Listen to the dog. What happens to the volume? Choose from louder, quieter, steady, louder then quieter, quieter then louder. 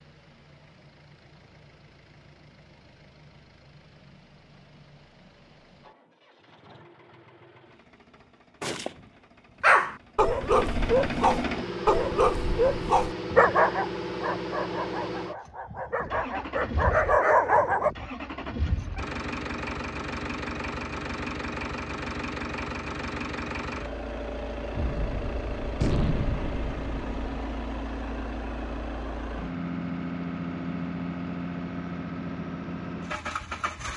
quieter then louder.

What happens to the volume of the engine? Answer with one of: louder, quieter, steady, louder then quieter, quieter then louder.
louder.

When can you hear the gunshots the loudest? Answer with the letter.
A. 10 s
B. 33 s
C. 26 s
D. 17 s
C.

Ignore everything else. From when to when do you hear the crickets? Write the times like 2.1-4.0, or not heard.
not heard.